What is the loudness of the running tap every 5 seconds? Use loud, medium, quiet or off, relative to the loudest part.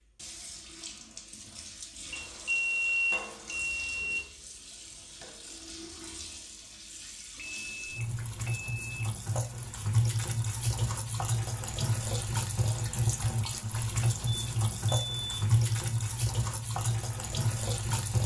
quiet, medium, loud, loud.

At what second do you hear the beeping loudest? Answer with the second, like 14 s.
3 s.